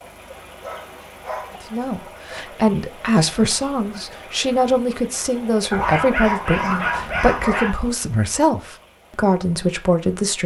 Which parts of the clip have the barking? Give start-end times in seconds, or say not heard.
0.6-1.6, 5.7-7.7.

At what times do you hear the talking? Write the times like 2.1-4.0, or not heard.
1.7-10.4.